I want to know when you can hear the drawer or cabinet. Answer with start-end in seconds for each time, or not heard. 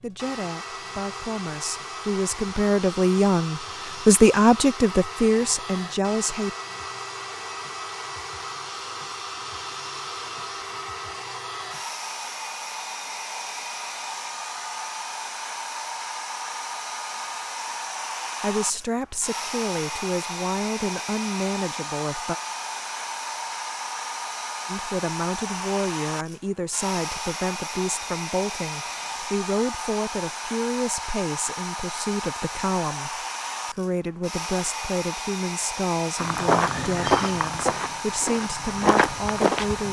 not heard.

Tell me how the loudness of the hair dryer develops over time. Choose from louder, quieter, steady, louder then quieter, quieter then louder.
steady.